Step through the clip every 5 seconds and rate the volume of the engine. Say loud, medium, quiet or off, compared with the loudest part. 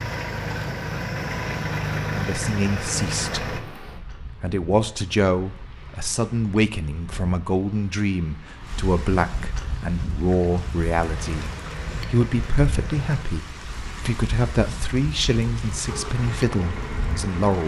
loud, off, medium, medium.